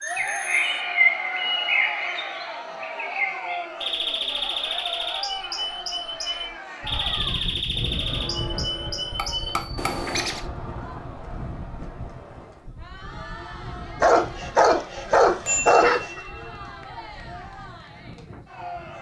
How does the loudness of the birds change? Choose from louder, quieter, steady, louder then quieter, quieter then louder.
quieter.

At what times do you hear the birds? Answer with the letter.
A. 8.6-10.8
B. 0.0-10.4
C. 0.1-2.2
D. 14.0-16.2
B.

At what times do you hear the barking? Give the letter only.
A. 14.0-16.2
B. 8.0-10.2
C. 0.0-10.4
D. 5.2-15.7
A.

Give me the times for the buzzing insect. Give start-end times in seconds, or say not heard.
not heard.